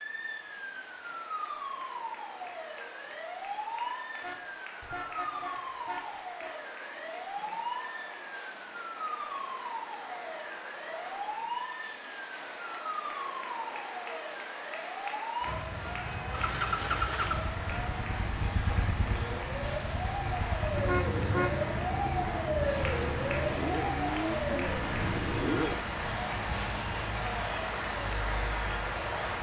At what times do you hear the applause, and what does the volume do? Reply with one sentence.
You can hear the applause from 0.0 to 29.3 s, getting louder.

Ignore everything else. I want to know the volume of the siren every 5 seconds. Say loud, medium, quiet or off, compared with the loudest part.
medium, medium, medium, medium, loud, medium.